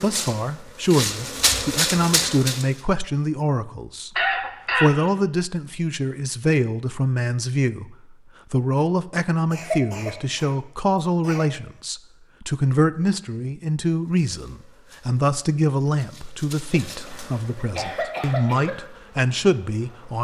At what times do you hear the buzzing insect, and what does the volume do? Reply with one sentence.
The buzzing insect can be heard briefly from 0.0 to 2.6 s; and from 14.1 to 20.1 s, getting louder then quieter.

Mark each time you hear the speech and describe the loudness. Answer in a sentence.
The speech can be heard from 0.0 to 4.2 s, getting quieter then louder; and from 4.8 to 20.1 s, at a steady volume.